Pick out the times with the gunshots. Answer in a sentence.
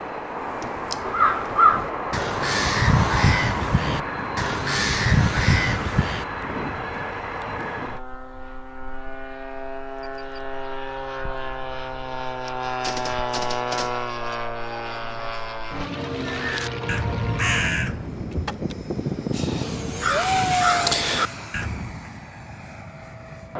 The gunshots can be heard from 12.4 to 14.3 s.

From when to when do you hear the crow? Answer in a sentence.
The crow can be heard from 0.4 to 6.2 s and from 16.1 to 22.1 s.